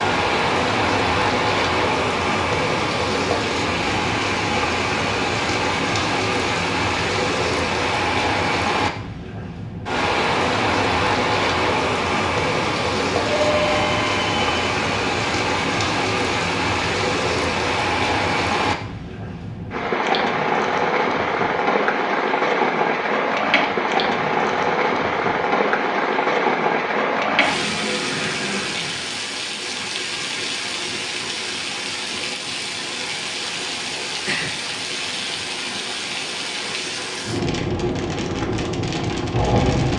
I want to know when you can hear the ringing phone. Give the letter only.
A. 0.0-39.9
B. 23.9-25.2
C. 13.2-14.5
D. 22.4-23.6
C.